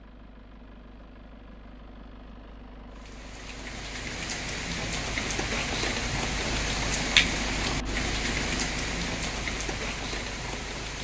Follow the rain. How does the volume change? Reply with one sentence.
The loudness of the rain goes up, then down.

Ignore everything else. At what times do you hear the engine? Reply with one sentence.
You can hear the engine from 0.0 to 10.9 s.